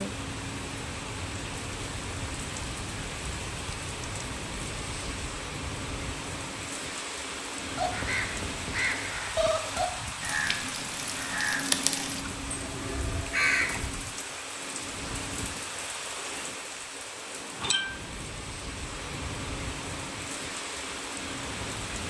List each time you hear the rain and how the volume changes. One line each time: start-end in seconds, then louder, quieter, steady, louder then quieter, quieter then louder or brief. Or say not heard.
0.0-22.0 steady.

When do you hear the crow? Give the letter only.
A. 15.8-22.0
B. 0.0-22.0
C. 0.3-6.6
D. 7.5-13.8
D.